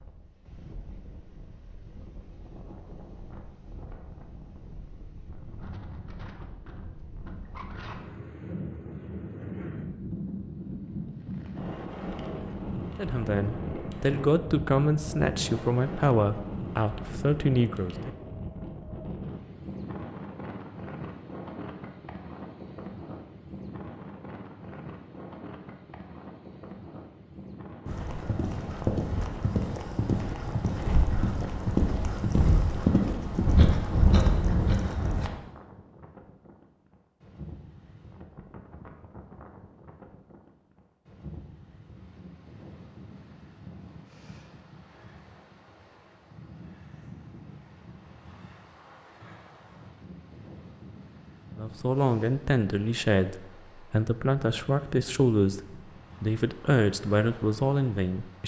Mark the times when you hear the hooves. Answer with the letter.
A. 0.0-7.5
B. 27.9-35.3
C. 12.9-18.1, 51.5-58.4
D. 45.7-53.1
B.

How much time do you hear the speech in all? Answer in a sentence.
You can hear the speech for 12 seconds altogether.